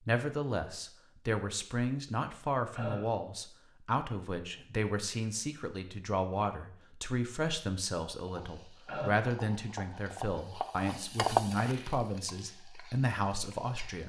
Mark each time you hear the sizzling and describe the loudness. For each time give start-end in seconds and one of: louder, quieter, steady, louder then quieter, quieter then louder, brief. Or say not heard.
8.2-14.0 louder then quieter.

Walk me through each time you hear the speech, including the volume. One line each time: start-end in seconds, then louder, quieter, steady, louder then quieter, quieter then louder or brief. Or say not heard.
0.1-14.0 steady.